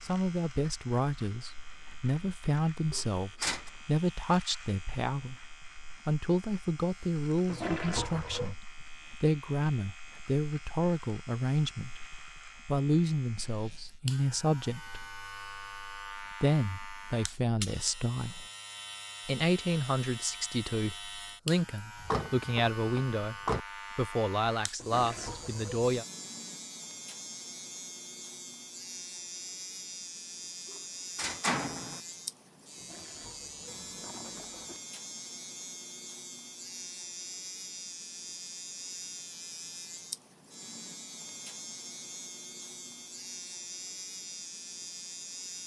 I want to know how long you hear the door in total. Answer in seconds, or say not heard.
4 s.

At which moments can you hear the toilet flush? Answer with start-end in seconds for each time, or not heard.
7.5-8.6, 24.8-25.9, 32.8-34.8.